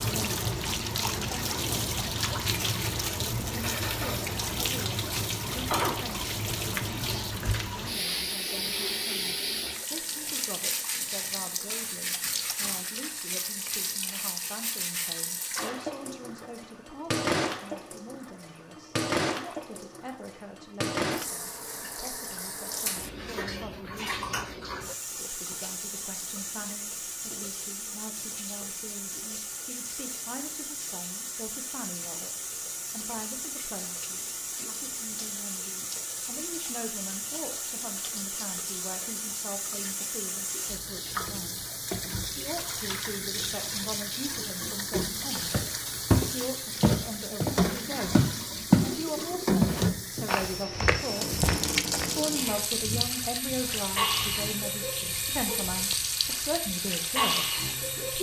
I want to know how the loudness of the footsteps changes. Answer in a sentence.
The volume of the footsteps goes down.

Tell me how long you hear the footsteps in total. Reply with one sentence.
The footsteps can be heard for 8 seconds in total.